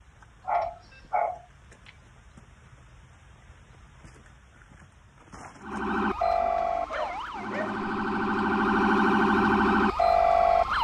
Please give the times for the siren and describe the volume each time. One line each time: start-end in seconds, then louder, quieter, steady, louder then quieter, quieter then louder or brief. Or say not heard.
5.6-10.8 quieter then louder.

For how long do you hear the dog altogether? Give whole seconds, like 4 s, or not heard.
3 s.